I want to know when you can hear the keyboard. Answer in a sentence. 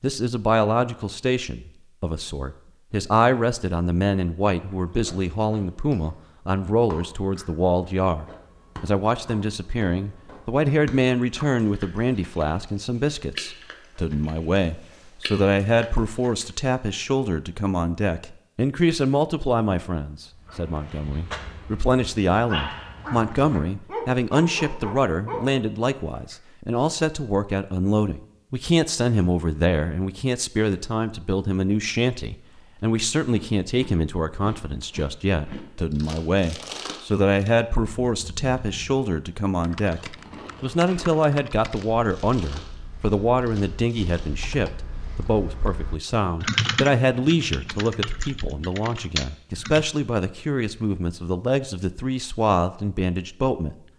You can hear the keyboard from 39.6 to 49.9 s.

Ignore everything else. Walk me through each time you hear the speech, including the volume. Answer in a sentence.
The speech can be heard from 0.0 to 53.8 s, at a steady volume.